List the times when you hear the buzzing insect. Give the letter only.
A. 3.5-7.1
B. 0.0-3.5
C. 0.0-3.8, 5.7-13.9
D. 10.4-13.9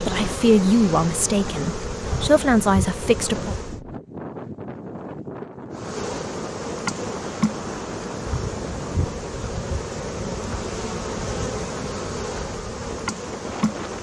C.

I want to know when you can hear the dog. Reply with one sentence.
The dog can't be heard in this clip.